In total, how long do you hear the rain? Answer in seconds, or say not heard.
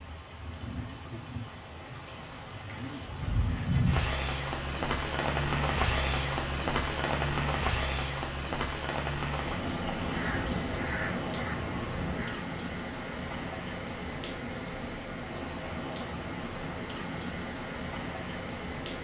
19 s.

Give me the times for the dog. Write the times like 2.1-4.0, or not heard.
not heard.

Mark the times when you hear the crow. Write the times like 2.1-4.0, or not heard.
9.9-12.3.